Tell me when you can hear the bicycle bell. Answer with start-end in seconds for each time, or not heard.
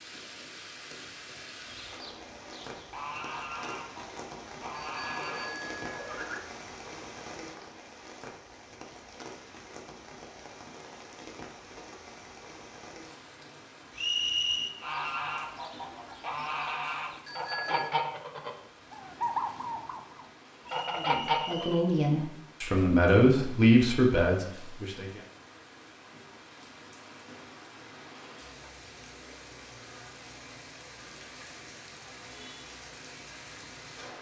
4.8-6.3, 17.2-17.9.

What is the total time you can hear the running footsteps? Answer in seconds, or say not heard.
not heard.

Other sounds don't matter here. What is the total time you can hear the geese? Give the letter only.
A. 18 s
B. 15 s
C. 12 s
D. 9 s
C.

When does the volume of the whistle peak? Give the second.
14 s.